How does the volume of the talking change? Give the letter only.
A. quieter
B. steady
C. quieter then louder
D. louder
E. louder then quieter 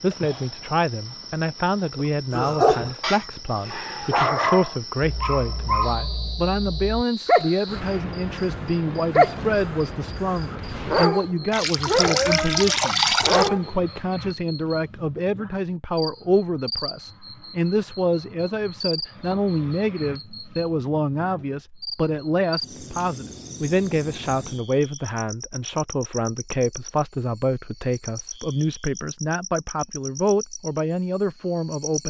B.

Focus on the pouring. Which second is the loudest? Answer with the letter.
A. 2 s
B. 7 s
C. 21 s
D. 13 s
D.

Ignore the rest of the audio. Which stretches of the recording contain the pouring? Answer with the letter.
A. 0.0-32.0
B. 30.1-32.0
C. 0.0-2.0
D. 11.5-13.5
D.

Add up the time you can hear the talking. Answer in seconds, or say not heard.
32 s.